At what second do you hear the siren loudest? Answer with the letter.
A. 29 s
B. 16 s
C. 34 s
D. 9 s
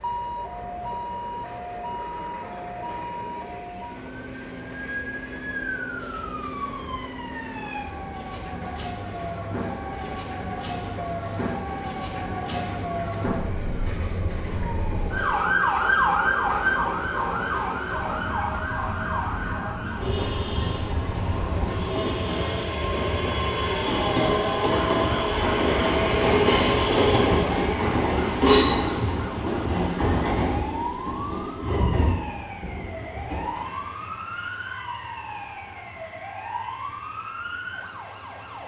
B.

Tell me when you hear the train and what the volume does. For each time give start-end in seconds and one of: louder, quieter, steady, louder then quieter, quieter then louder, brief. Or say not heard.
0.0-38.6 louder then quieter.